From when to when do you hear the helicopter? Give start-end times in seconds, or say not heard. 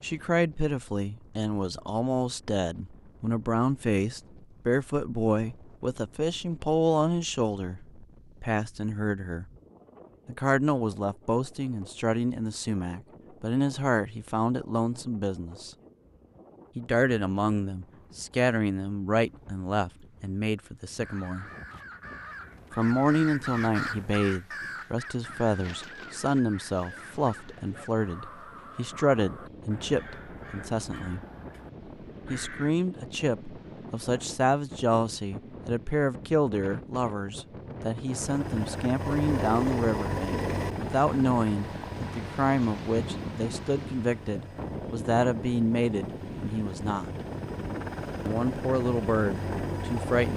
38.0-50.3.